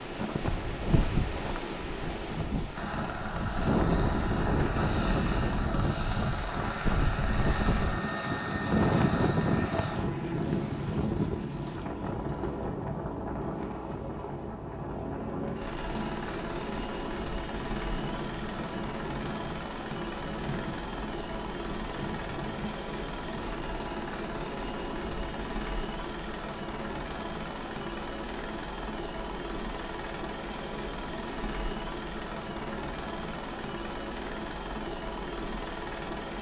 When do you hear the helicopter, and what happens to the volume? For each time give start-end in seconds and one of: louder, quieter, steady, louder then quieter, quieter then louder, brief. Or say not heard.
2.8-36.3 steady.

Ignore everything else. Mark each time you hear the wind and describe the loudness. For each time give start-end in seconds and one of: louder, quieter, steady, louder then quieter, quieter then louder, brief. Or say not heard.
0.0-23.6 quieter.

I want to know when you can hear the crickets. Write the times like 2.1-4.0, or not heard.
not heard.